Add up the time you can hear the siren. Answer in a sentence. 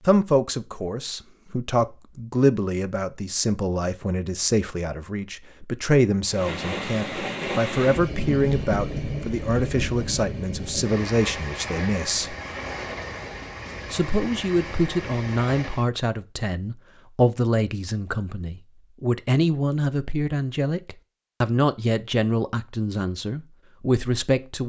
You can't hear the siren here.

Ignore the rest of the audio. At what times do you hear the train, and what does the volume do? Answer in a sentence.
The train can be heard from 6.2 to 15.9 s, getting quieter.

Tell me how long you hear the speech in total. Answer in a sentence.
You can hear the speech for 23 seconds altogether.